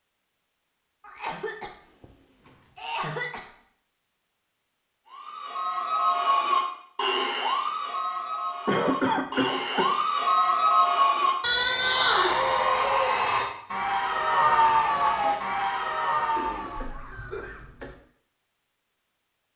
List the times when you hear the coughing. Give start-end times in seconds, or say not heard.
1.0-3.5, 8.7-9.9, 16.4-17.9.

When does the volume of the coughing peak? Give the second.
9 s.